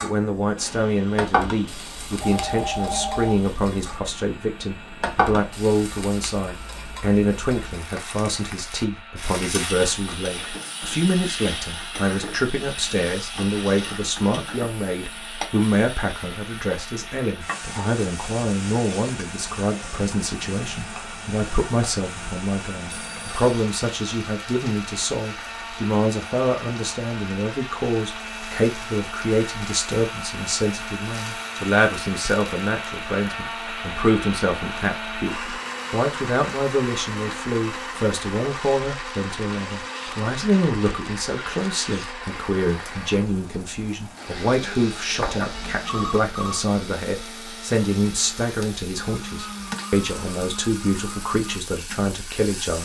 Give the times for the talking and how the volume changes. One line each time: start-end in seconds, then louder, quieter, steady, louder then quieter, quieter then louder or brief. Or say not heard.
0.0-52.8 steady.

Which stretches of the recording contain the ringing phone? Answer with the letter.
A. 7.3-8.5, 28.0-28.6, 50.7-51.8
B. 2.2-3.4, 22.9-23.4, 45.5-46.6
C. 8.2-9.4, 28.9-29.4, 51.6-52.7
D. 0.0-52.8
B.